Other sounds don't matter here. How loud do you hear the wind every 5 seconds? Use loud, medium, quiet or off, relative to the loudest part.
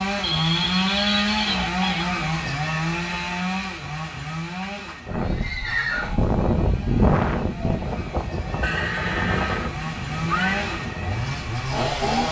off, loud, medium.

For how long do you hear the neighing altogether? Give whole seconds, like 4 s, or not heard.
6 s.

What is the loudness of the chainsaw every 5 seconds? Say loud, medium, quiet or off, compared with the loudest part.
loud, medium, loud.